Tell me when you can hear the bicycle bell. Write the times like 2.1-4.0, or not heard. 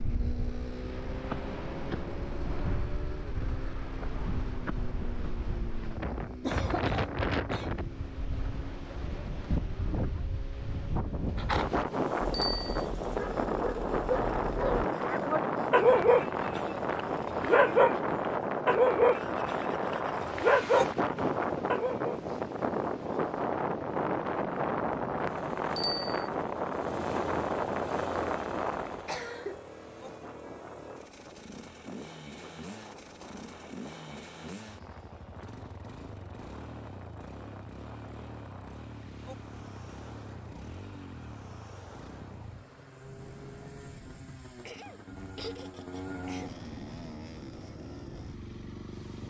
12.3-12.8, 25.8-26.2.